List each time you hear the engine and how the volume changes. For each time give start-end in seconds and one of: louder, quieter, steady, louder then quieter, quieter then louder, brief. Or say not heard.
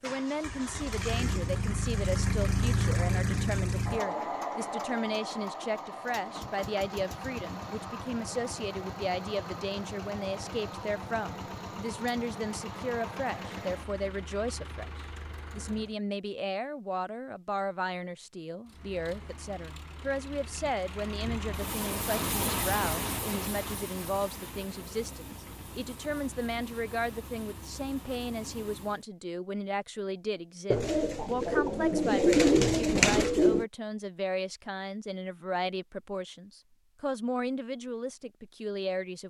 0.0-15.9 quieter
18.6-29.1 louder then quieter.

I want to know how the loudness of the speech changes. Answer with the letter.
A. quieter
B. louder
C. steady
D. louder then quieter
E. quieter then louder
C.